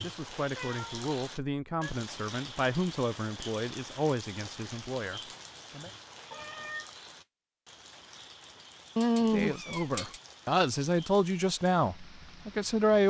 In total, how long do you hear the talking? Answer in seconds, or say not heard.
10 s.